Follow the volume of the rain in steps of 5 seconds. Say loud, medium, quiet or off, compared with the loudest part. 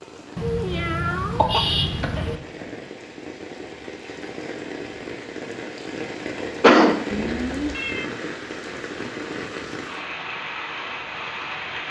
medium, loud, loud.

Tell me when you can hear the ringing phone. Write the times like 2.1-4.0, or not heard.
not heard.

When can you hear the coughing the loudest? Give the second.
7 s.